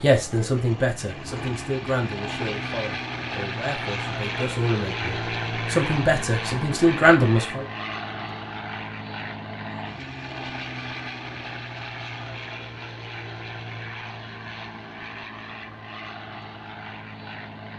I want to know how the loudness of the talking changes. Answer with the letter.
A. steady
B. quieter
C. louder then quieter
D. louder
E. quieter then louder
E.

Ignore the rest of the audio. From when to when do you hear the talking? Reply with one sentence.
You can hear the talking from 0.0 to 7.7 s.